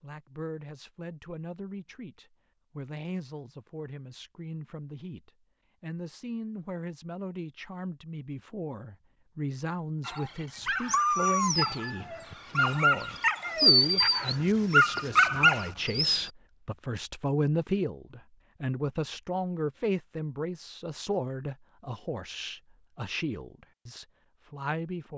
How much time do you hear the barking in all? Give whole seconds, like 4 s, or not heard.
6 s.